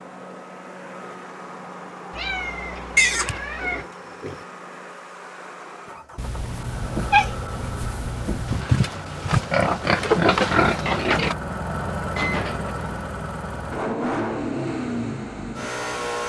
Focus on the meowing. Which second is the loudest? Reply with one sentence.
The volume of the meowing peaks at 7 seconds.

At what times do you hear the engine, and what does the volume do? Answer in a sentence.
The engine can be heard from 0.0 to 16.2 s, getting louder.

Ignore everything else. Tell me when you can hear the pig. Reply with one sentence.
The pig can be heard from 3.0 to 4.3 s and from 8.4 to 11.3 s.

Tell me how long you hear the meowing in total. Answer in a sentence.
The meowing can be heard for 5 seconds in total.